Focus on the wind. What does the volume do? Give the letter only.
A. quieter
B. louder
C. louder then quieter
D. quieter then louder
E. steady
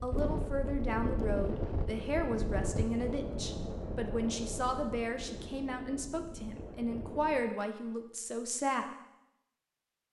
A.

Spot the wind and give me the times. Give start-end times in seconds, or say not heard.
0.0-7.5.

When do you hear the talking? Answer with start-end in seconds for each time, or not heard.
0.0-8.9.